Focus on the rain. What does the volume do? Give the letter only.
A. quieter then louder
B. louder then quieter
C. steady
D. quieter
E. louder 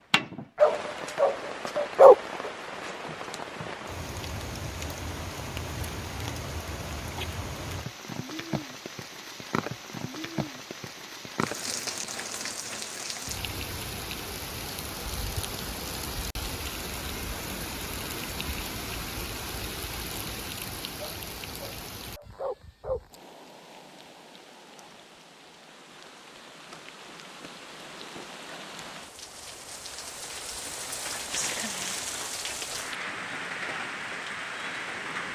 A.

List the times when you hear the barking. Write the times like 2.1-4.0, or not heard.
0.6-2.5, 21.0-23.0.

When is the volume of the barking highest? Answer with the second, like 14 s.
2 s.